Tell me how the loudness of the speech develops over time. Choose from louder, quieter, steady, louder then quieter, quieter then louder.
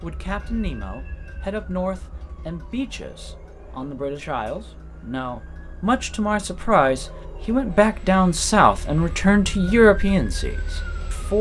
louder.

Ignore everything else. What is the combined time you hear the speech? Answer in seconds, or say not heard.
11 s.